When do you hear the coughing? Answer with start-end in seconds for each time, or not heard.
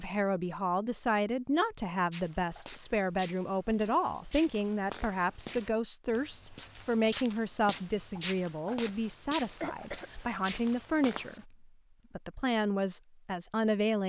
9.6-10.1.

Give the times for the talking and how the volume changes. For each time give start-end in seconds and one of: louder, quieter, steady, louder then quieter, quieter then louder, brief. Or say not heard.
0.0-14.0 steady.